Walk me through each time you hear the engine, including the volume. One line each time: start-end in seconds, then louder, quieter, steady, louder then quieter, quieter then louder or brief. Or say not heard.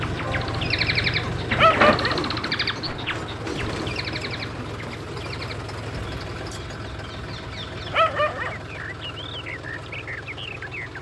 0.0-10.9 quieter.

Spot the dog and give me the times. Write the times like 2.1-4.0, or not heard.
1.6-2.2, 7.9-8.6.